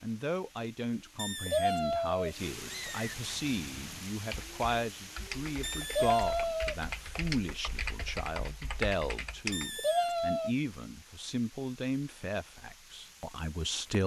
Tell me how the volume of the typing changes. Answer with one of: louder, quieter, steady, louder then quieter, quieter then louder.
louder.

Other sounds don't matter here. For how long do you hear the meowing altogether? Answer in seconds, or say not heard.
4 s.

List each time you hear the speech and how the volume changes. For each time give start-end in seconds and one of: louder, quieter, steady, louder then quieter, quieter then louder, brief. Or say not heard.
0.0-14.0 steady.